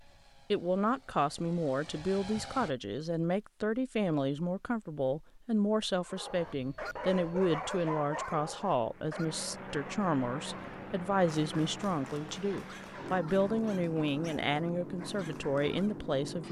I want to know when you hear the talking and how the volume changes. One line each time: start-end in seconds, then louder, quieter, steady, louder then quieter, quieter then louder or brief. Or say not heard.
0.5-16.4 steady.